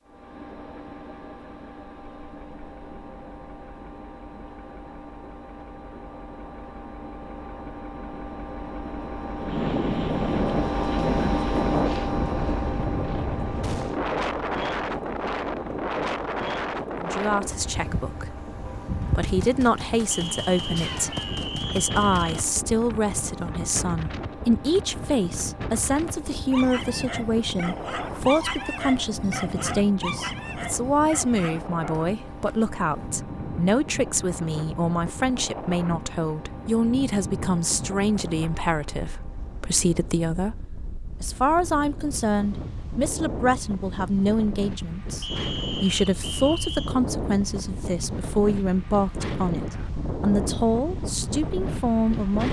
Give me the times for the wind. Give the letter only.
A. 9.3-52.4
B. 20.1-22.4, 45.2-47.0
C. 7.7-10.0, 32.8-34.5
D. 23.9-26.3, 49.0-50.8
A.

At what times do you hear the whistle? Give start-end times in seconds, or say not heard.
20.1-22.4, 45.2-47.0.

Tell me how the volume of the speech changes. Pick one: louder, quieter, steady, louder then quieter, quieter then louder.
steady.